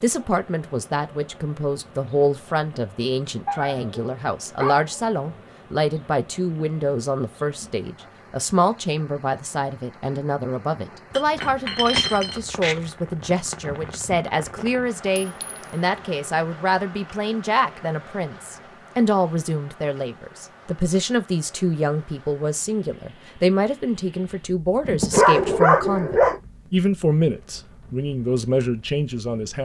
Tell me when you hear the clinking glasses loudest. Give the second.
12 s.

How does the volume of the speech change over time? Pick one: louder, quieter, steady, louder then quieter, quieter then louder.
steady.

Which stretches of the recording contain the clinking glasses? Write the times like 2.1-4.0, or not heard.
11.1-12.4, 15.2-15.8.